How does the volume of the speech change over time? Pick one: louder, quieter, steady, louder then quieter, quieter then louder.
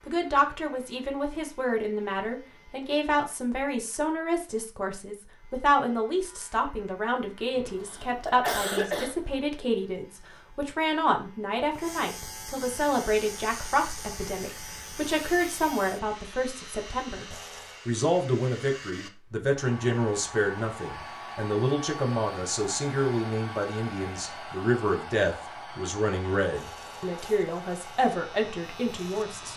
steady.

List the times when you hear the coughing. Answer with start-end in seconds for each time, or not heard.
7.5-9.2.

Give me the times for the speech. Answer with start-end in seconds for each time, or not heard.
0.1-29.5.